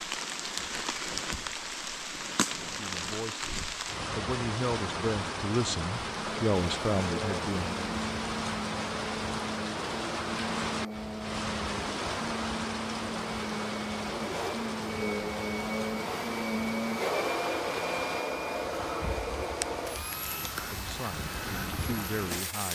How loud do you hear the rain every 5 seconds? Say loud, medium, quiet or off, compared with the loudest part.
loud, loud, loud, medium, loud.